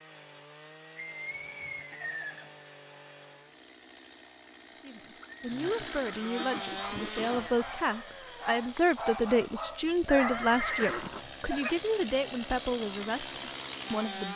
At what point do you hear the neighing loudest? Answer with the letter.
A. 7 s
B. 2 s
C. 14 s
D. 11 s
D.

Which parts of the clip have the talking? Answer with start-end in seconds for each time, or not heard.
4.8-14.3.